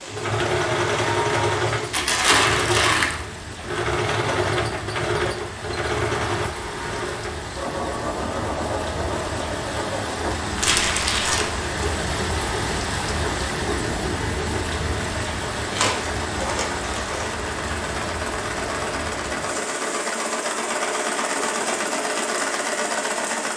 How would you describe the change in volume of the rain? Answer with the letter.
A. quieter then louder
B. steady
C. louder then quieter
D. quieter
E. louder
C.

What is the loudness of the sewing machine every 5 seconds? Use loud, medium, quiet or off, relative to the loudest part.
loud, loud, medium, medium, loud.